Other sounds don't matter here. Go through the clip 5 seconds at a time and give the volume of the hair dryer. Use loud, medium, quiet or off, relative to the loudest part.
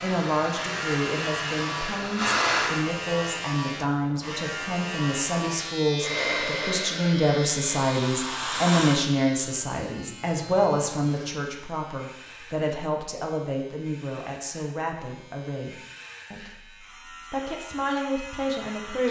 loud, loud, off, off.